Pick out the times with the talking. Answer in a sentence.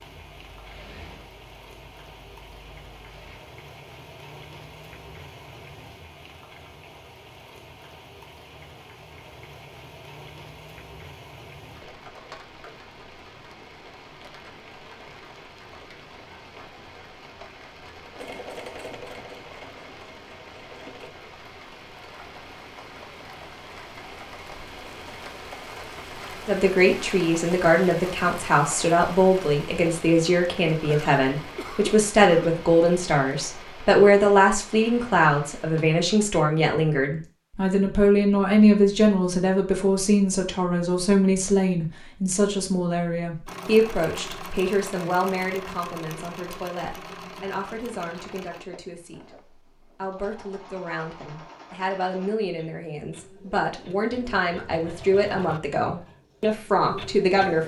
You can hear the talking from 26.4 to 57.6 s.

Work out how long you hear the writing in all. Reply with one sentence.
You can't hear the writing here.